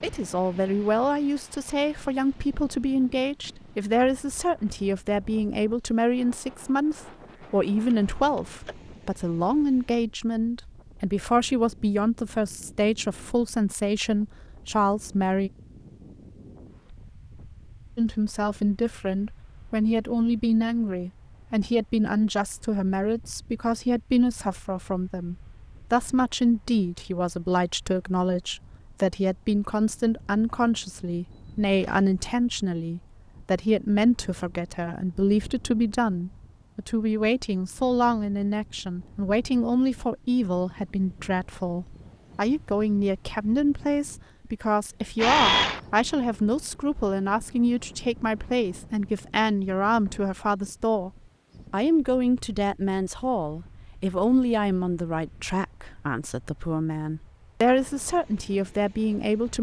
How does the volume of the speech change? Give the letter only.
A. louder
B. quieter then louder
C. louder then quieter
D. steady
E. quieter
D.